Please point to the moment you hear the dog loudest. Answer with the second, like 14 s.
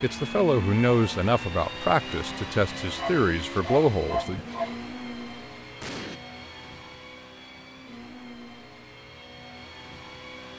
4 s.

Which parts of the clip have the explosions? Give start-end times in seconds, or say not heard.
5.8-6.2.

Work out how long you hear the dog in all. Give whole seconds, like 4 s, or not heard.
2 s.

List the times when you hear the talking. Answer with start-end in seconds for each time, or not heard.
0.0-4.4.